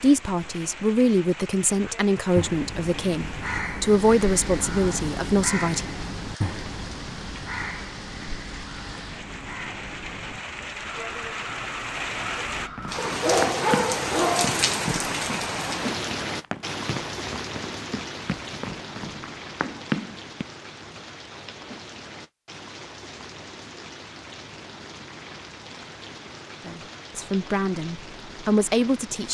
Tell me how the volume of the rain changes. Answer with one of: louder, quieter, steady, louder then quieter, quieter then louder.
louder then quieter.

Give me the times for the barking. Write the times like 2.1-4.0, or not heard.
12.9-14.6.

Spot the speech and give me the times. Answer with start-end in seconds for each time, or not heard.
0.0-5.8, 26.6-29.2.